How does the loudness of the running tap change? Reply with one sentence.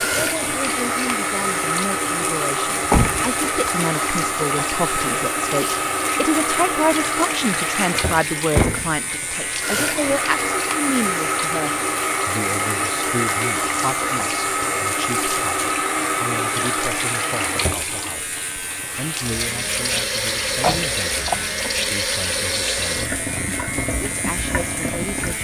The loudness of the running tap stays about the same.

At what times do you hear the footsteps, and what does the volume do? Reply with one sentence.
The footsteps can't be heard in this clip.